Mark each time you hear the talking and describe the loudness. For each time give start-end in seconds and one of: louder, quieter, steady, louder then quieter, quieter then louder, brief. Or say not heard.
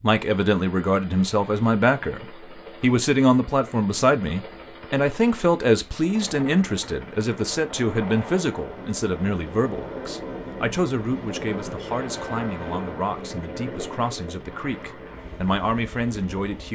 0.0-16.6 quieter.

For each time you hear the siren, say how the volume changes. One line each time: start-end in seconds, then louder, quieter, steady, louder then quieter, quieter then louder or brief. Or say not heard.
not heard.